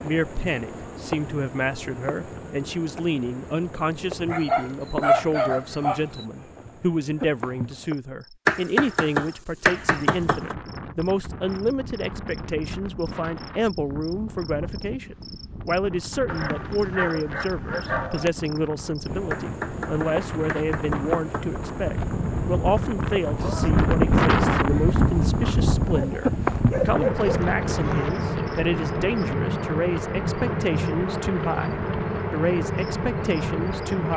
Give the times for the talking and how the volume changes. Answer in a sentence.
You can hear the talking from 0.0 to 34.1 s, at a steady volume.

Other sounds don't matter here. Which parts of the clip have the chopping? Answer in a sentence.
You can hear the chopping from 8.4 to 10.6 s and from 19.3 to 21.6 s.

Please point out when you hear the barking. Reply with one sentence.
You can hear the barking from 4.2 to 6.2 s, from 16.2 to 18.3 s and from 25.8 to 28.1 s.